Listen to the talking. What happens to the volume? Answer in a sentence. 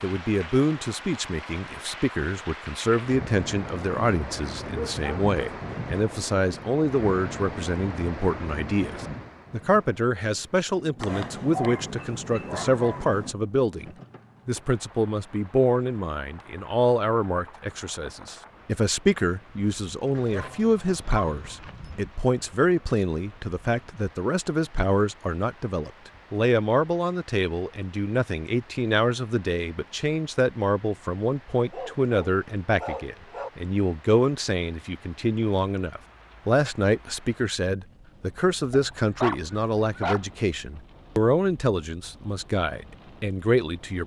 The loudness of the talking stays about the same.